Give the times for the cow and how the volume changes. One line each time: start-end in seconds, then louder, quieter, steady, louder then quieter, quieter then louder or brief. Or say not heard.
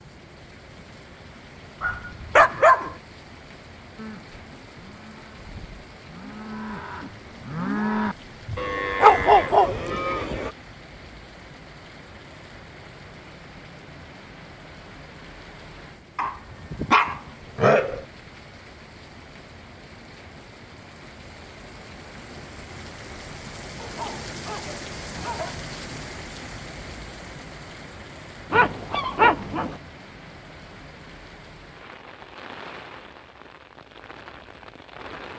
4.0-10.6 louder.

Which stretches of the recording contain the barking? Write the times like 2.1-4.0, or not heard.
1.8-3.0, 8.4-9.8, 16.1-18.1, 23.8-25.6, 28.5-29.8.